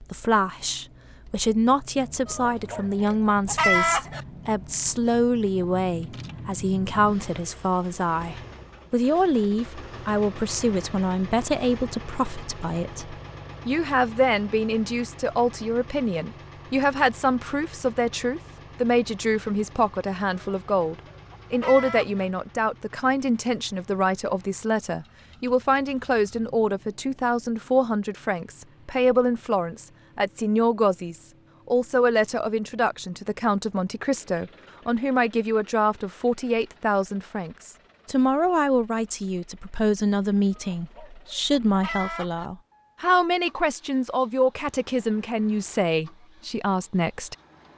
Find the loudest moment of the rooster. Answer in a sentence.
The volume of the rooster peaks at 4 seconds.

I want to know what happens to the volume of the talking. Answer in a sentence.
The volume of the talking stays about the same.